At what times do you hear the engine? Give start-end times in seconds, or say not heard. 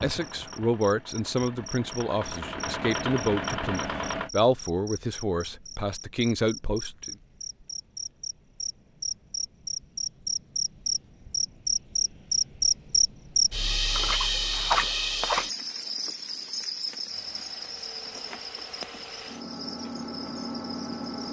0.0-4.3, 17.1-21.2.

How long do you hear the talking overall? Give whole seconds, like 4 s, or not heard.
7 s.